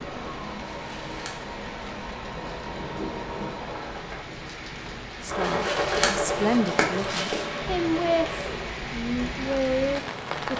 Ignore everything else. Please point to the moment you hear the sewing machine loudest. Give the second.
6 s.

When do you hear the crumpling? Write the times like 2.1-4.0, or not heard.
0.7-1.4, 5.4-7.5.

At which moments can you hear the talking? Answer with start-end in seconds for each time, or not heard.
5.2-10.5.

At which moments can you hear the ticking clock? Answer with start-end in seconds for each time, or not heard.
not heard.